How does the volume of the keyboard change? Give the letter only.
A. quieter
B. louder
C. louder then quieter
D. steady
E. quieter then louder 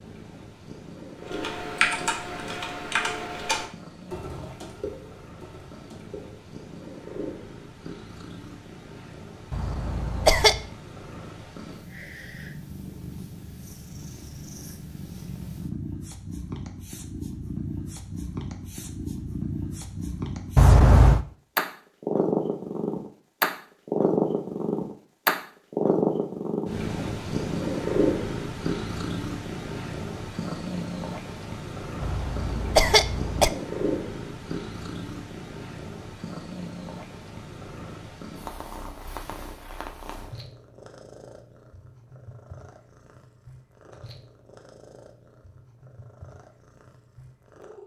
A.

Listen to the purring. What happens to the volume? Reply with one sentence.
The loudness of the purring goes up, then down.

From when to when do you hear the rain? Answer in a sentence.
The rain can't be heard in this clip.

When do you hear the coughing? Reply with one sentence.
You can hear the coughing from 9.5 to 10.7 s, from 20.6 to 21.2 s and from 32.0 to 33.5 s.